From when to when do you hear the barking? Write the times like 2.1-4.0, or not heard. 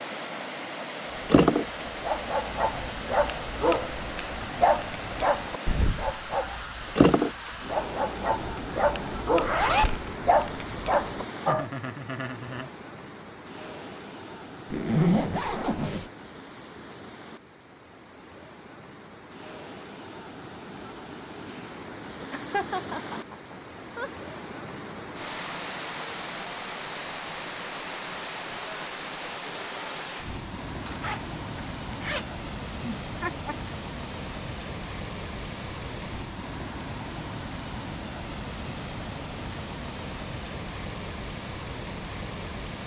1.2-11.7.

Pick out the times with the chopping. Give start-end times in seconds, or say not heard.
not heard.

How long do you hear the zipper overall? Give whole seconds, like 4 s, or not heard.
3 s.